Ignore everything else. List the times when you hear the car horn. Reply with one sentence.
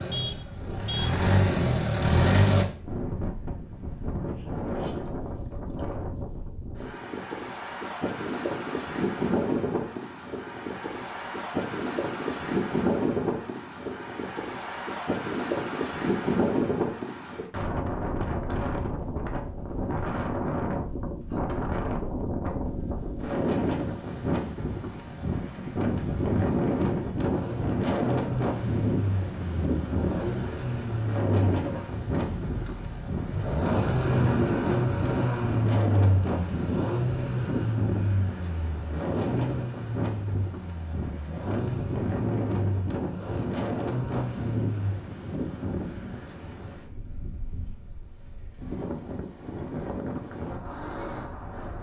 You can hear the car horn from 0.1 to 1.2 s.